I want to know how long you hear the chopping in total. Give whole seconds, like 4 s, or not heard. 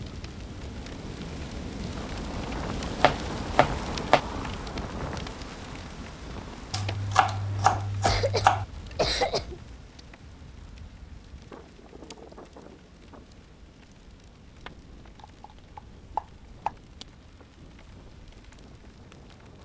5 s.